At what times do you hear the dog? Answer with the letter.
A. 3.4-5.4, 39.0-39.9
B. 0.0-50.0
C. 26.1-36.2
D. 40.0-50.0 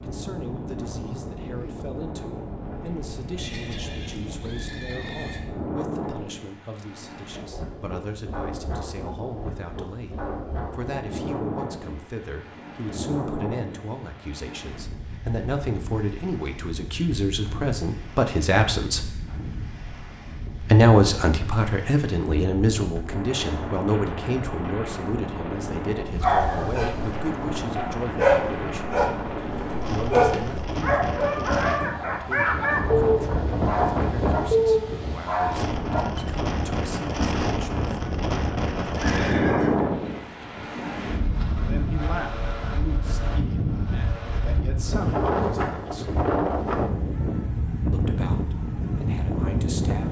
C.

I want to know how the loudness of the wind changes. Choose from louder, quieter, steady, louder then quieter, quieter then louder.
louder.